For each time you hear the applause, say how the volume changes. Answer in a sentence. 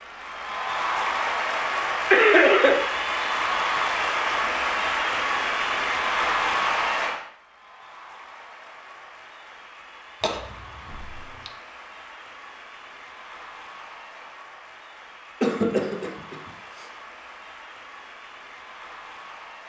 The applause can be heard from 0.0 to 19.6 s, getting quieter.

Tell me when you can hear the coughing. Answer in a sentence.
The coughing can be heard from 2.1 to 2.8 s, from 10.2 to 11.5 s and from 15.4 to 16.9 s.